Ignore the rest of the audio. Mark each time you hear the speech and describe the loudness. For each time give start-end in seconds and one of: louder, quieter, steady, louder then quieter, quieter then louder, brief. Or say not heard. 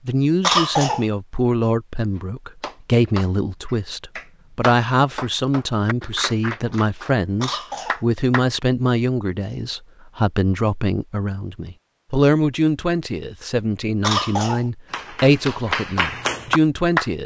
0.1-17.2 steady.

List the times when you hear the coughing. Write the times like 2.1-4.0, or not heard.
0.4-1.1, 7.4-8.1, 14.0-14.7.